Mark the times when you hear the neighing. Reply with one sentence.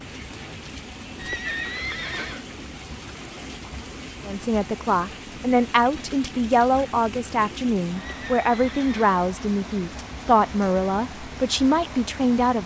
You can hear the neighing from 1.1 to 2.5 s and from 8.0 to 9.1 s.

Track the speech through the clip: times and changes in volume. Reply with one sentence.
You can hear the speech from 4.2 to 12.6 s, at a steady volume.